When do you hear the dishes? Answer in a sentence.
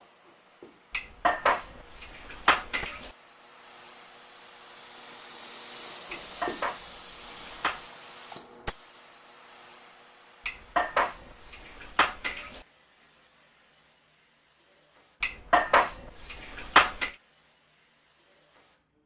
The dishes can be heard from 0.9 to 3.1 s, from 6.1 to 7.8 s, from 10.4 to 12.7 s and from 15.2 to 17.1 s.